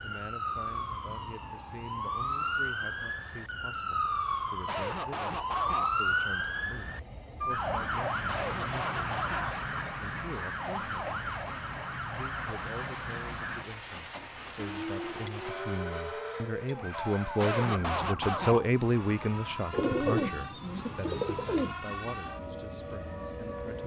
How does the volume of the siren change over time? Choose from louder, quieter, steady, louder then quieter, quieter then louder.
quieter.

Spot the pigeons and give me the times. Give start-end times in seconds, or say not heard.
19.7-21.8.